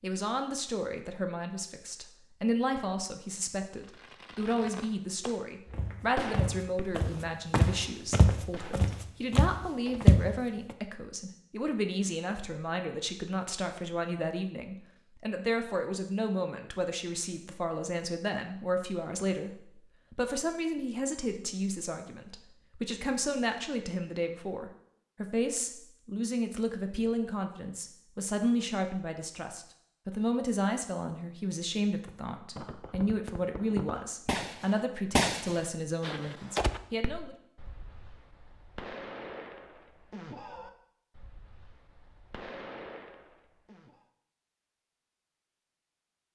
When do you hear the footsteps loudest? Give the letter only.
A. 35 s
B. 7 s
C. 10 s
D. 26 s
C.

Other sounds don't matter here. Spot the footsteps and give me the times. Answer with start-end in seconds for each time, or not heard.
5.7-10.2.